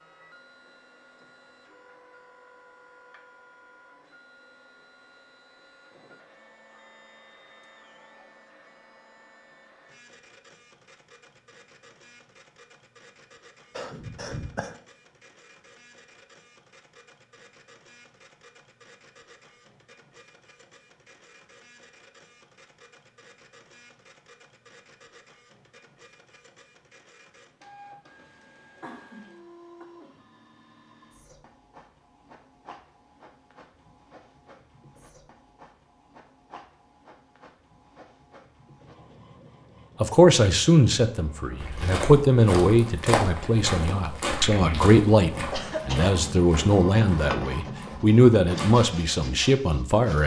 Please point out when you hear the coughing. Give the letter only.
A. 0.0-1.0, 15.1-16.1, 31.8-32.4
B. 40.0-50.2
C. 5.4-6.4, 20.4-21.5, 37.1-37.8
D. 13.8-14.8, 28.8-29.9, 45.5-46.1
D.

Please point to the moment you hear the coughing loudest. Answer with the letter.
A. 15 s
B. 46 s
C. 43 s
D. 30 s
B.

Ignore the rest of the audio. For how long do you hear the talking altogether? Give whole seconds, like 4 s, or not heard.
10 s.